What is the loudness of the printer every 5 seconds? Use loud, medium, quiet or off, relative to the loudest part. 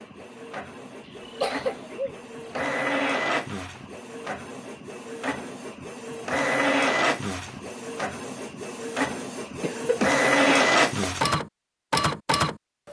medium, medium, loud.